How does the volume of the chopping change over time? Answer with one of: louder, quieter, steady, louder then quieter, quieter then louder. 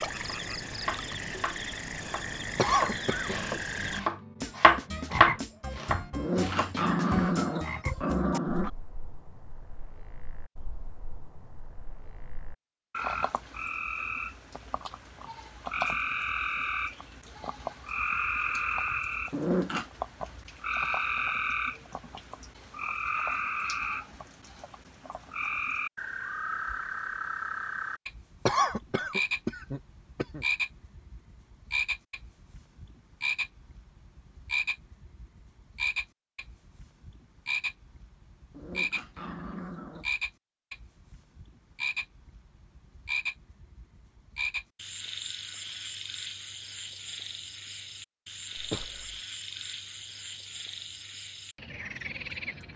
louder then quieter.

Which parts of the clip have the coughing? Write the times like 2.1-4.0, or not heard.
2.5-3.4, 28.4-30.4, 48.5-49.2.